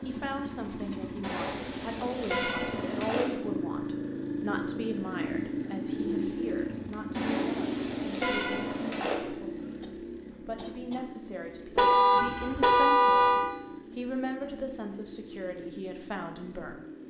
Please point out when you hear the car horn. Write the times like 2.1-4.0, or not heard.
1.2-3.2, 7.1-9.2, 11.8-13.5.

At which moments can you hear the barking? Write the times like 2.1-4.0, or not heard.
not heard.